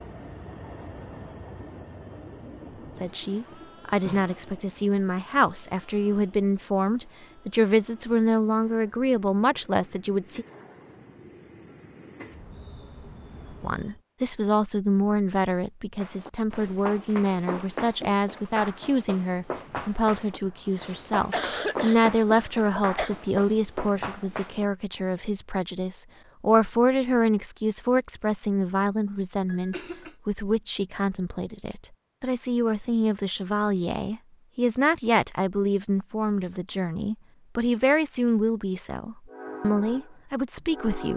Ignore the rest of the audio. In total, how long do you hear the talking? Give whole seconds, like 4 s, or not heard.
35 s.